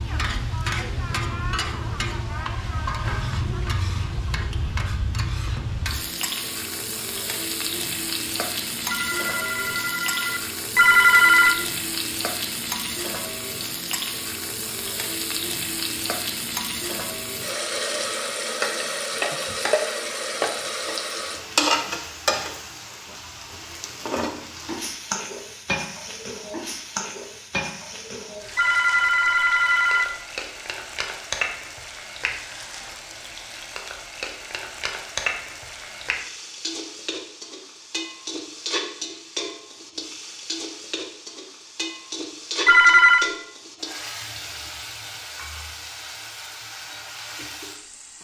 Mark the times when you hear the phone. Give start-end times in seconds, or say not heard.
8.9-11.6, 28.6-30.1, 42.6-43.3.